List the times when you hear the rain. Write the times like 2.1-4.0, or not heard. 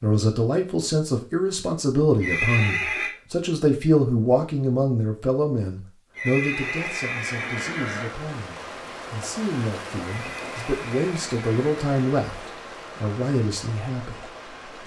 6.6-14.8.